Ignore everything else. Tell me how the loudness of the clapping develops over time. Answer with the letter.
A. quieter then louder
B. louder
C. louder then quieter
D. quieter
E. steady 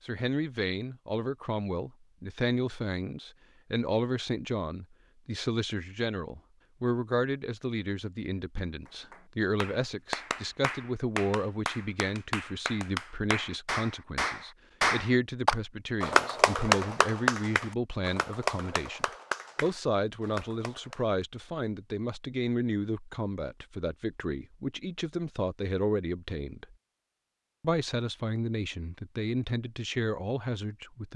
C.